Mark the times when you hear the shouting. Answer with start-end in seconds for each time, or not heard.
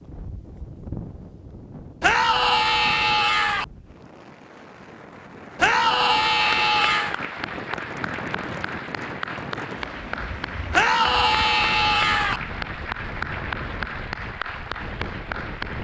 2.0-3.6, 5.5-7.2, 10.7-12.4.